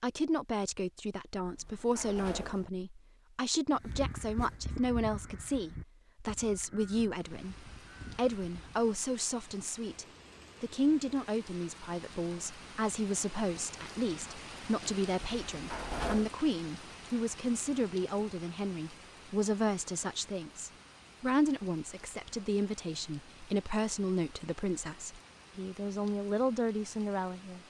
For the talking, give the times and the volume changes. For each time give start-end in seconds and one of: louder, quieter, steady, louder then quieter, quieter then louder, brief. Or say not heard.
0.0-27.6 steady.